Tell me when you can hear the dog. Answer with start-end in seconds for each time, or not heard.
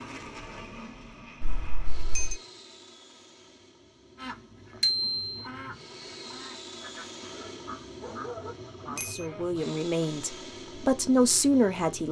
7.3-8.6.